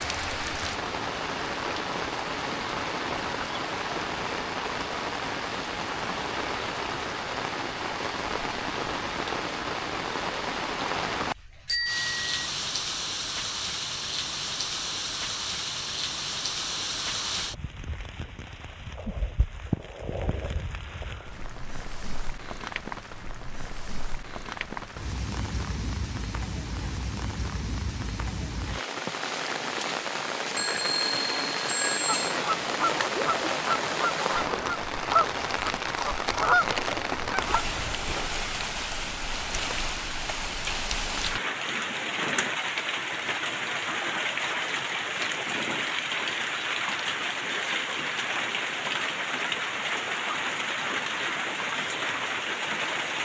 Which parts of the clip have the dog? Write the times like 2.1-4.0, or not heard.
not heard.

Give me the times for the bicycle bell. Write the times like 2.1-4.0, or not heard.
11.7-12.3, 30.6-32.4.